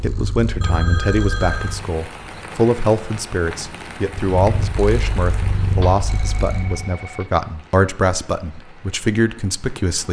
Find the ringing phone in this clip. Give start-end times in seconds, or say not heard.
0.6-1.8, 5.8-7.3.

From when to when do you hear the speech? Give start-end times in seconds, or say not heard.
0.0-10.0.